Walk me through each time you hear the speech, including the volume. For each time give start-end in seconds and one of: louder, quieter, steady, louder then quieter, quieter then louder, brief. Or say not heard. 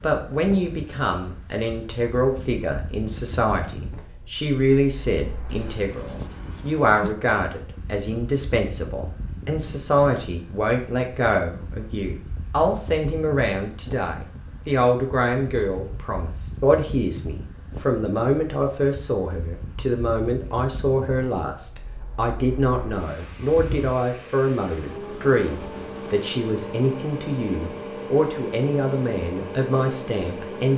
0.0-30.7 steady.